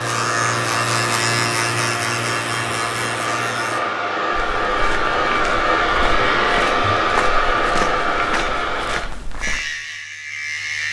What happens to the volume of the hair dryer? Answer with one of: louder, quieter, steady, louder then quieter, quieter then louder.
louder.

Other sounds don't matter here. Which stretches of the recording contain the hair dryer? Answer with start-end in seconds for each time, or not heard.
0.0-9.1.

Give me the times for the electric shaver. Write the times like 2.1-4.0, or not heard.
0.0-3.8, 9.4-10.8.